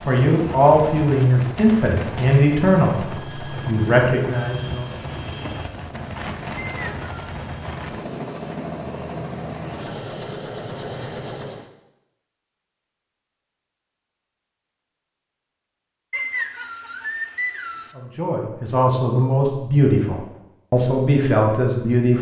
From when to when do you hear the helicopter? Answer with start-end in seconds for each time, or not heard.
0.0-11.7.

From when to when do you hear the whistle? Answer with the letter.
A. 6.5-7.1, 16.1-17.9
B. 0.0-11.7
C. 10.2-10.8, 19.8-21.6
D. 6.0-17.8
A.